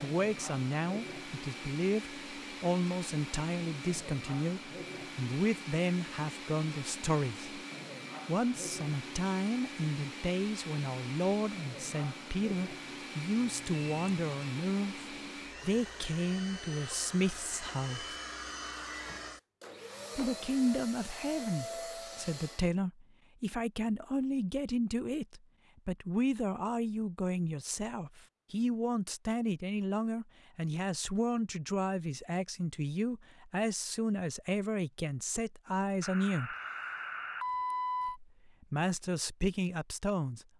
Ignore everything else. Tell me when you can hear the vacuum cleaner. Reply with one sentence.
The vacuum cleaner can be heard from 0.0 to 22.7 s.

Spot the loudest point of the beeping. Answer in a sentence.
The volume of the beeping peaks at 38 seconds.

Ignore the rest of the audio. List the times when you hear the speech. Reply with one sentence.
You can hear the speech from 0.0 to 7.5 s, from 8.2 to 18.1 s, from 20.1 to 36.5 s and from 38.0 to 40.5 s.